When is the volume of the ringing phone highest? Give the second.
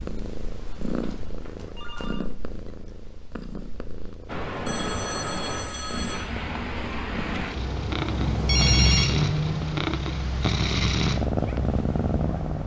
9 s.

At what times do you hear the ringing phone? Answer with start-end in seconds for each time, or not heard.
0.9-2.2, 4.7-6.3, 8.4-9.2.